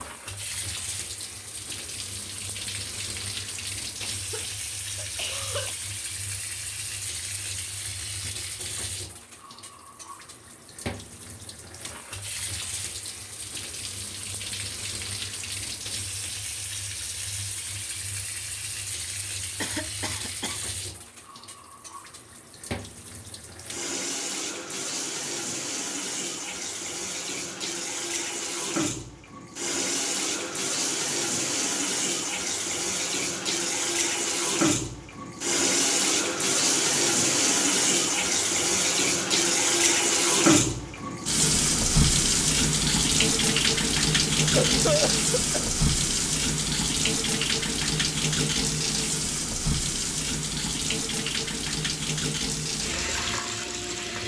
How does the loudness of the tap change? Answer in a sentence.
The loudness of the tap goes up.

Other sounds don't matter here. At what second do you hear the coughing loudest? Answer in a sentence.
The volume of the coughing peaks at 45 seconds.